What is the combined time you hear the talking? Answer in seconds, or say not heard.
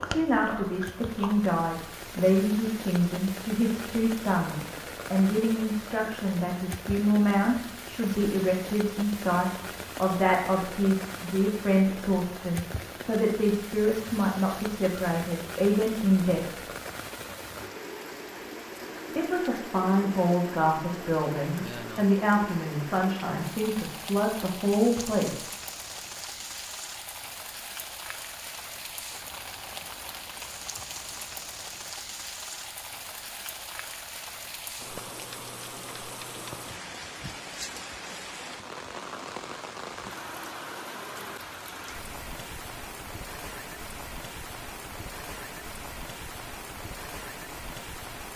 23 s.